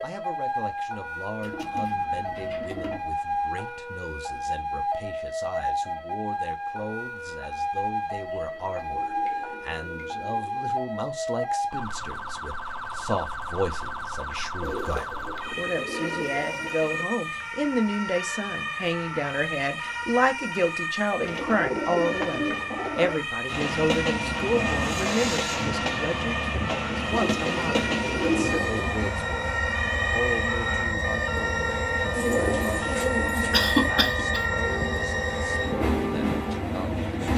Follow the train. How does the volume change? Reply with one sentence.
The volume of the train stays about the same.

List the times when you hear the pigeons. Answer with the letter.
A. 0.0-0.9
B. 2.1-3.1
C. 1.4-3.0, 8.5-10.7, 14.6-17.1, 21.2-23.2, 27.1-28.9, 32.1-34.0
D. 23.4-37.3
C.